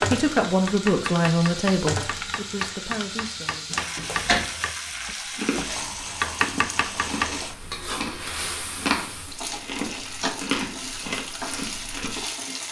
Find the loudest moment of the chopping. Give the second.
6 s.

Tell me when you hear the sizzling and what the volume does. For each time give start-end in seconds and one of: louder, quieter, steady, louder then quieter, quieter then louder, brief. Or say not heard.
0.0-12.6 steady.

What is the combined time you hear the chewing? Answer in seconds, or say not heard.
7 s.